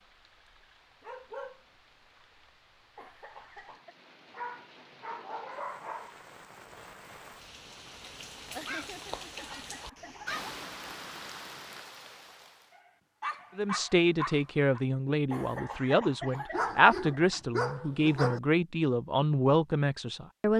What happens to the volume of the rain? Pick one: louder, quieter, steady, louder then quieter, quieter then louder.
louder.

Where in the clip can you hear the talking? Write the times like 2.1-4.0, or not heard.
13.6-20.5.